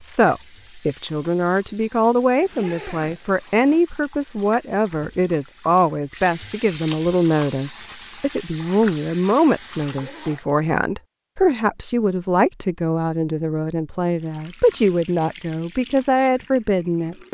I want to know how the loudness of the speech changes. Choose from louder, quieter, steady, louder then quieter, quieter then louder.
steady.